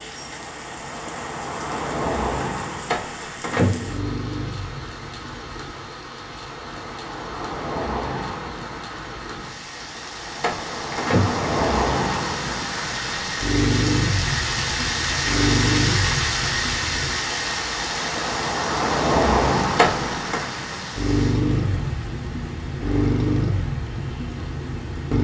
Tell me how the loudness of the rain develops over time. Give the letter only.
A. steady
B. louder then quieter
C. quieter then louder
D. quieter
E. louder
B.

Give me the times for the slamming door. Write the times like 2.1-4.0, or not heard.
2.9-4.2, 10.4-11.6, 19.8-20.4.